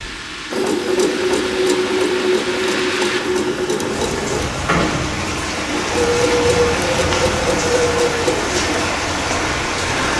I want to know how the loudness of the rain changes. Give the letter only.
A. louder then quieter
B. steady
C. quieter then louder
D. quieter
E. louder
E.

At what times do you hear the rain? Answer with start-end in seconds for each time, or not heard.
0.0-10.1.